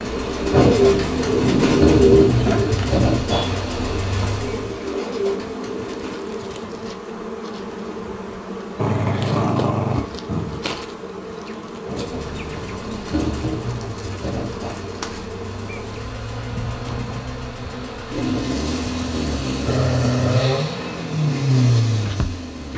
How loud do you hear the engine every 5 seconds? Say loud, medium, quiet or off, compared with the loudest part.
loud, off, medium, medium, loud.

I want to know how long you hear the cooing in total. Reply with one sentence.
You can hear the cooing for 6 seconds altogether.